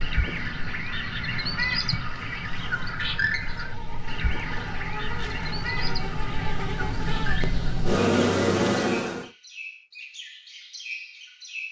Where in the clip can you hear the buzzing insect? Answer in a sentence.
You can hear the buzzing insect from 0.0 to 9.2 s.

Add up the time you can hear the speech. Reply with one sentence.
The speech can't be heard in this clip.